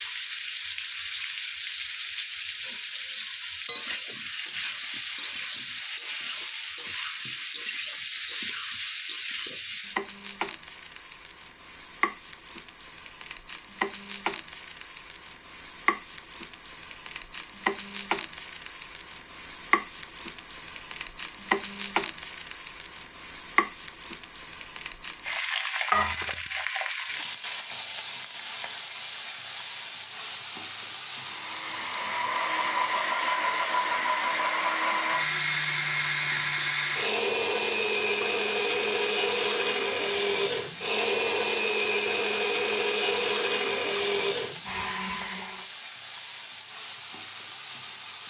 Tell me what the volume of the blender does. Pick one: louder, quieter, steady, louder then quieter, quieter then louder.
steady.